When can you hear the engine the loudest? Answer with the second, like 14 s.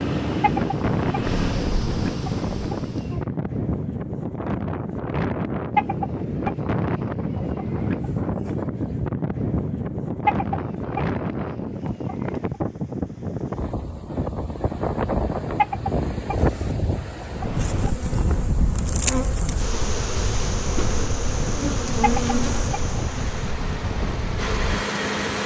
25 s.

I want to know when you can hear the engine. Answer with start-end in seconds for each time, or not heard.
0.0-1.8, 22.9-25.4.